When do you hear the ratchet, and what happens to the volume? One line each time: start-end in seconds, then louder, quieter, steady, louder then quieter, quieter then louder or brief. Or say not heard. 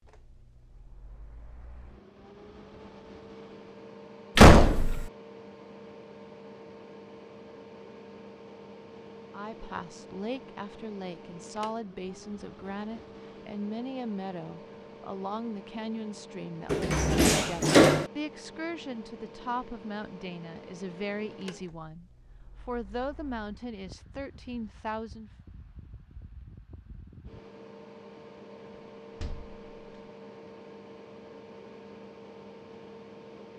not heard.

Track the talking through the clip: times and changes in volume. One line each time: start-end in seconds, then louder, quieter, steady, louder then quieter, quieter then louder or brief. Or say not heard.
9.3-25.3 steady.